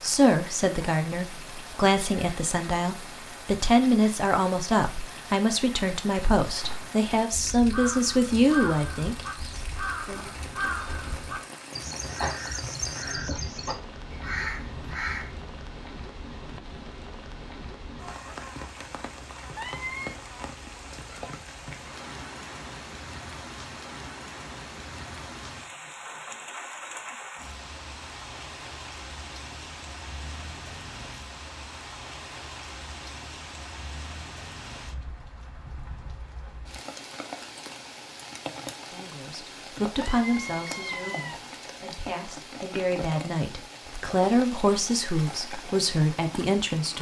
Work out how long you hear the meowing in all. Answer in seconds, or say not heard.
2 s.